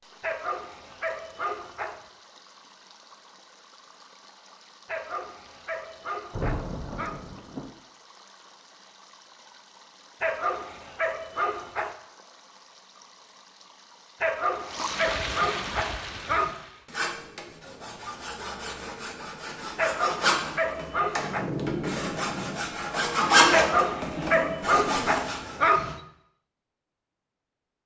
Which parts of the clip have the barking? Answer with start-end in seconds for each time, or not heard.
0.2-2.0, 4.8-7.2, 10.2-11.9, 14.2-16.6, 19.8-21.5, 23.5-26.0.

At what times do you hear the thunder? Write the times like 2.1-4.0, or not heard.
6.3-7.7, 21.0-22.6.